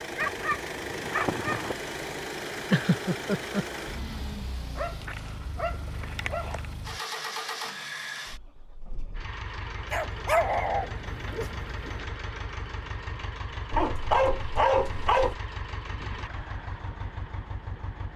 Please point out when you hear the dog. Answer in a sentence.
The dog can be heard from 0.1 to 1.8 s, from 4.8 to 6.7 s, from 9.9 to 11.9 s and from 13.7 to 15.3 s.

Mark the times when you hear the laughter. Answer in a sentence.
You can hear the laughter from 2.7 to 3.6 s.